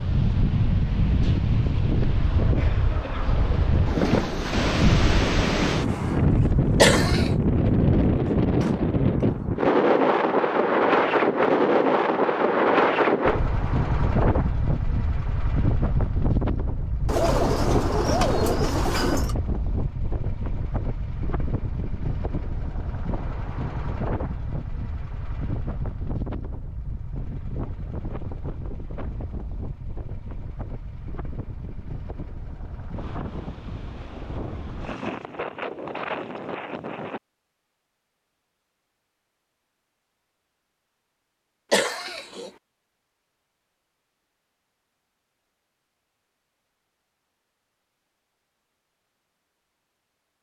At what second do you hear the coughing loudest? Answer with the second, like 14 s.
7 s.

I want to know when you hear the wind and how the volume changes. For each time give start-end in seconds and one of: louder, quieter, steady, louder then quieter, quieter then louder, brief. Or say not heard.
0.0-37.2 quieter.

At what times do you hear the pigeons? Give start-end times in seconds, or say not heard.
17.1-19.4.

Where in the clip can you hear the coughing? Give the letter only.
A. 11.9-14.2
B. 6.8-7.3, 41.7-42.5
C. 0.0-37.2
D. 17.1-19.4
B.